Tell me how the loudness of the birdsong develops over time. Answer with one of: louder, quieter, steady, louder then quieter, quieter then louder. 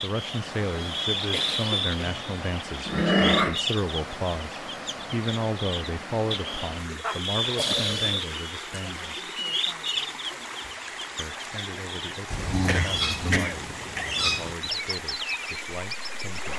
steady.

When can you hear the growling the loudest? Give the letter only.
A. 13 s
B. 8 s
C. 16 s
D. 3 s
D.